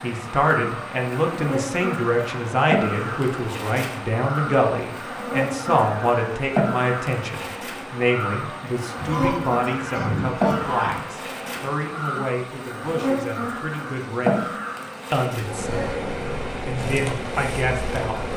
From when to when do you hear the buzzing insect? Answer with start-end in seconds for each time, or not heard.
0.0-18.3.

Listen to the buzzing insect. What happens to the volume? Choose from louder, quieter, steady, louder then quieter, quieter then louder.
steady.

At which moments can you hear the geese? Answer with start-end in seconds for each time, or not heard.
8.9-11.0.